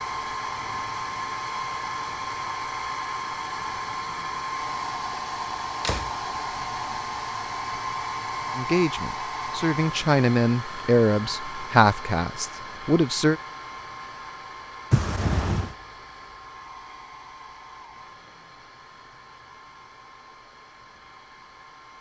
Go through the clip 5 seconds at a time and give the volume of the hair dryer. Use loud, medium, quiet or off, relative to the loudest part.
loud, loud, medium, quiet, quiet.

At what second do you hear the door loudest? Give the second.
15 s.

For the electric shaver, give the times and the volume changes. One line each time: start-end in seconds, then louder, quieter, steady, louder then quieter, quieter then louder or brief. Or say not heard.
not heard.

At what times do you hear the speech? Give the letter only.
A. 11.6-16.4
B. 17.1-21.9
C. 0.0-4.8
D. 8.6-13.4
D.